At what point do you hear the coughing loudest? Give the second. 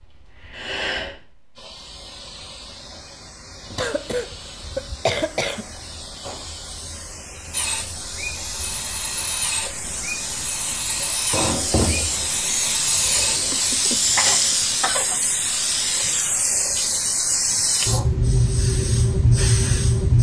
5 s.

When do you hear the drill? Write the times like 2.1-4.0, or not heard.
7.5-13.7.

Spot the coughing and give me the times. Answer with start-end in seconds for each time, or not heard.
3.8-5.7, 13.5-15.2.